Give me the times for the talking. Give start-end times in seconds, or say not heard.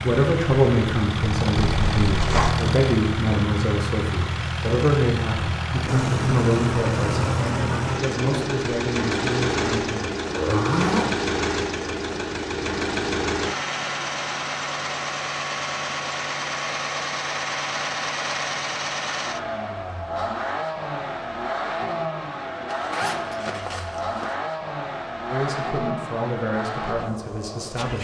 0.0-10.1, 25.3-27.9.